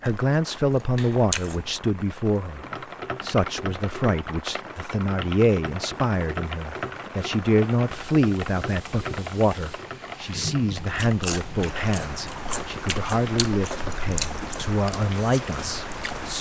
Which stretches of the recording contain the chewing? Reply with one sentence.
The chewing can be heard from 0.0 to 1.9 s and from 10.8 to 16.3 s.